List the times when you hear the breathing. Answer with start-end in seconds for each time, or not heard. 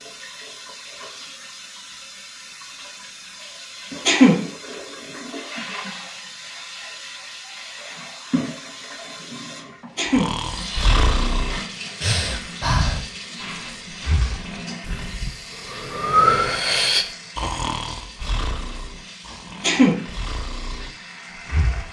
10.1-21.8.